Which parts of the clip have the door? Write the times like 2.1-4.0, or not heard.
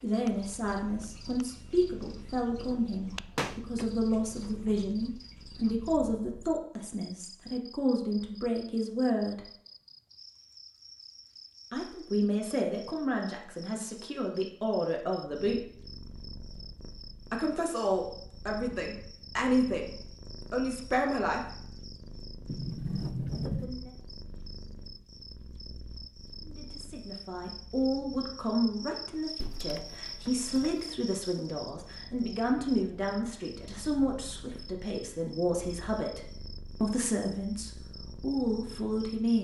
3.1-4.8, 22.4-23.8, 29.4-30.9.